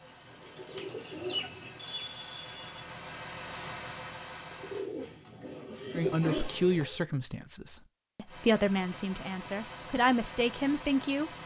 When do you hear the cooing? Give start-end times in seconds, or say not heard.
0.0-2.7, 4.5-6.8.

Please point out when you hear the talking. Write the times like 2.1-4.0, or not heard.
5.9-11.3.